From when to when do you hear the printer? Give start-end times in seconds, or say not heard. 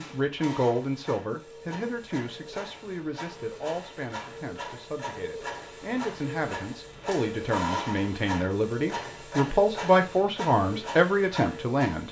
0.0-12.0.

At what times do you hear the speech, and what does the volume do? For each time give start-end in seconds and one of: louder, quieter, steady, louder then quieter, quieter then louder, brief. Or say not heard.
0.0-12.0 quieter then louder.